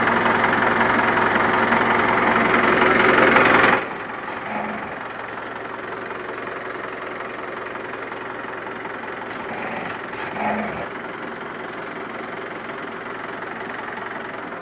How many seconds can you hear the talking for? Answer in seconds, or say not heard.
not heard.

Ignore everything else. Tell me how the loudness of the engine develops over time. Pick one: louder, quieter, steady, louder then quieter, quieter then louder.
quieter.